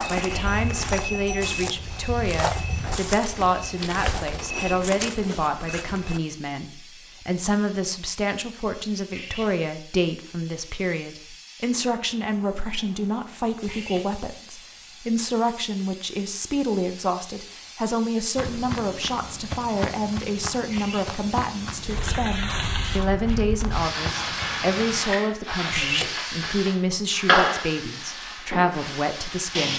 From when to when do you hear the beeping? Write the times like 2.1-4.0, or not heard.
not heard.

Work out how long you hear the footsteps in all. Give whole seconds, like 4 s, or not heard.
13 s.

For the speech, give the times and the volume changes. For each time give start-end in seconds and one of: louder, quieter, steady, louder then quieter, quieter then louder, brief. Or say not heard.
0.1-29.7 steady.